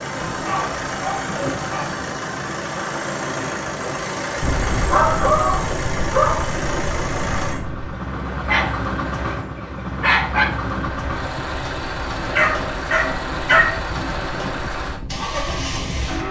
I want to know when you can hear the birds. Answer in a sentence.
You can't hear the birds here.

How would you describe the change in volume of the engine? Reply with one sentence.
The loudness of the engine stays about the same.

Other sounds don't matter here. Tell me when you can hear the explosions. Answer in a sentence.
The explosions can be heard from 4.4 to 7.8 s.